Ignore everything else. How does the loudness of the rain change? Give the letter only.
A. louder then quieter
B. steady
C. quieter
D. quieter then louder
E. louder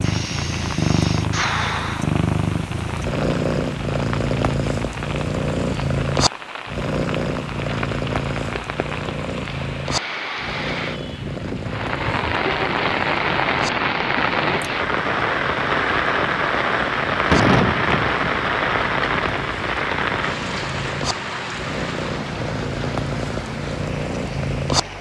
A.